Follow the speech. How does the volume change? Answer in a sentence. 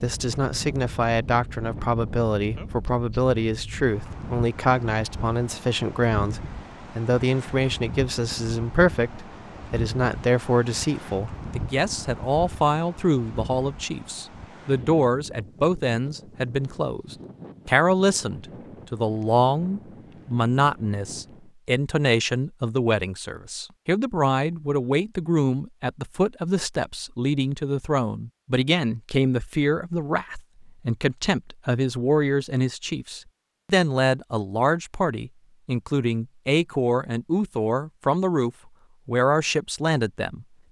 The loudness of the speech stays about the same.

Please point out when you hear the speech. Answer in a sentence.
The speech can be heard from 0.0 to 40.5 s.